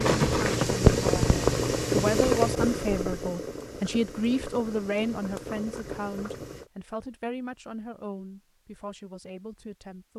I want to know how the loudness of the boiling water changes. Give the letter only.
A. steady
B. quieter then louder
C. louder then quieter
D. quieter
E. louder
D.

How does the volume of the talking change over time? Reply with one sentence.
The volume of the talking goes down.